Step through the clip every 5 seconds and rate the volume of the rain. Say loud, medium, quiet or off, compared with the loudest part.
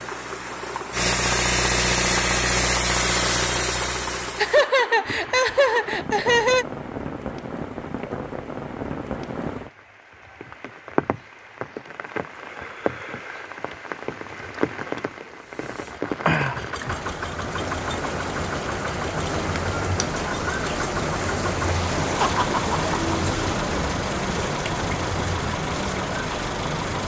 medium, medium, medium, loud, loud, loud.